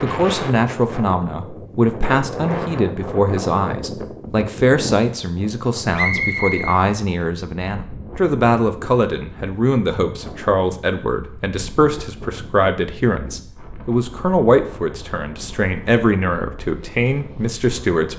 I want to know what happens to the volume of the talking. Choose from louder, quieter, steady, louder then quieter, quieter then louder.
steady.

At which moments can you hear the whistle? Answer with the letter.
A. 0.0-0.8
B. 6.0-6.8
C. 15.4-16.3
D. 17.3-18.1
B.